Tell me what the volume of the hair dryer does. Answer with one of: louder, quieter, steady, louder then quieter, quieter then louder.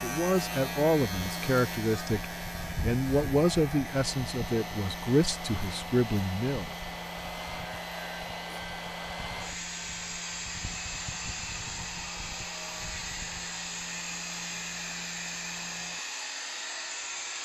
louder.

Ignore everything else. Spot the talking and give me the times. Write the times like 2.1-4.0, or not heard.
0.0-6.7.